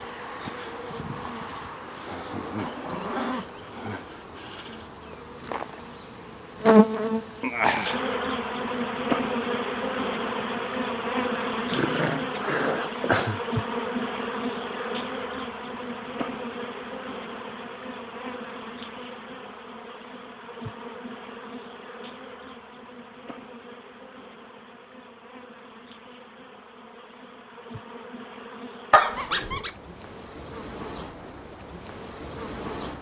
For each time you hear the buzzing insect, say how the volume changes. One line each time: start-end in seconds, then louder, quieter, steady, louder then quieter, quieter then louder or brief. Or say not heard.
0.0-32.9 quieter.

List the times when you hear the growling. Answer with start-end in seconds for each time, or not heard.
2.5-3.5, 11.7-13.4, 28.9-29.8.